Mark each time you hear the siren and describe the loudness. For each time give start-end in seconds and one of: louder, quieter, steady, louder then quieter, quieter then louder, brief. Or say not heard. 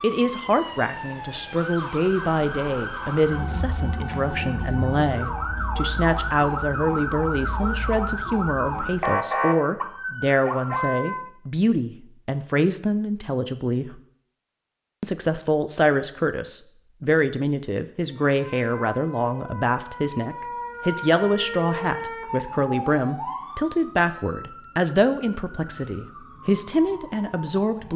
0.0-11.3 louder
18.0-27.9 louder then quieter.